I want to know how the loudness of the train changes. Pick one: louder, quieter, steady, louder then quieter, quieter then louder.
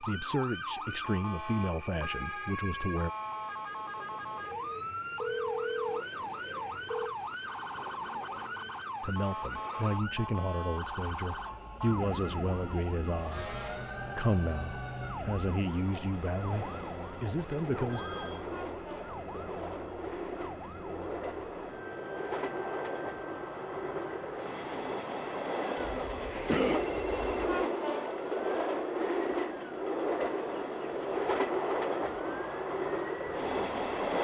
louder.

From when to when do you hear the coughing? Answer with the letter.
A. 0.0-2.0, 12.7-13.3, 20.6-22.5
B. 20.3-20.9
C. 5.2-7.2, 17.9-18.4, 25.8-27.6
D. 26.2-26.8
D.